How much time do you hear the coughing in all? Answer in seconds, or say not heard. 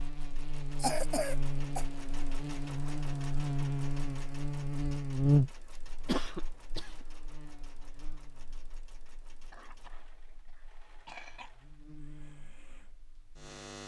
4 s.